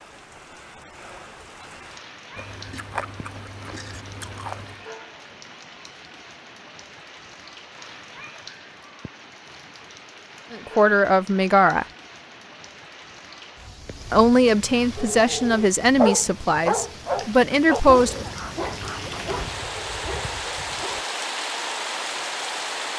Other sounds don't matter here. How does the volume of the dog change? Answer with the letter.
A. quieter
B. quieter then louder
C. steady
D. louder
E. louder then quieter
A.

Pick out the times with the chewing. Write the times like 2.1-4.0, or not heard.
2.4-4.8.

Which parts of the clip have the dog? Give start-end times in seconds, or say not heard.
14.9-21.1.